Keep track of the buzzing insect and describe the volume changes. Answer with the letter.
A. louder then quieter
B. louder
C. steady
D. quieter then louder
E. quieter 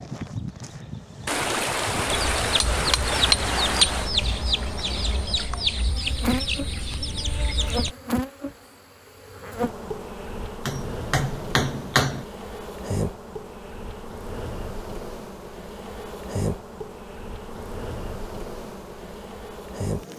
C.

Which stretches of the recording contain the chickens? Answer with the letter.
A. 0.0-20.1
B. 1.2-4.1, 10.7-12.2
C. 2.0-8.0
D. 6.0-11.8
C.